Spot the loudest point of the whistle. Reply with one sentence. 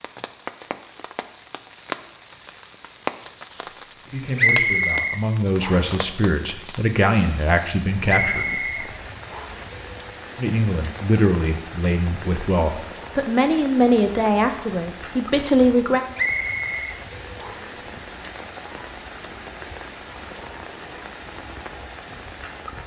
The loudest moment of the whistle is at 5 seconds.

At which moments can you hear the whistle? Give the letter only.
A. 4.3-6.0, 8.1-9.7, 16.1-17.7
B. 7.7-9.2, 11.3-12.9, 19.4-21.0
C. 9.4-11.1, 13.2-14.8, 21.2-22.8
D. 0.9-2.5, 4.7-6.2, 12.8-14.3
A.